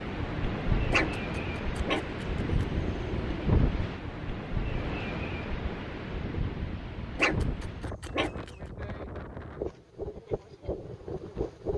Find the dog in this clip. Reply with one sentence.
The dog can be heard from 0.9 to 3.5 s and from 7.2 to 8.6 s.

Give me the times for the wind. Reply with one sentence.
The wind can be heard from 0.0 to 11.7 s.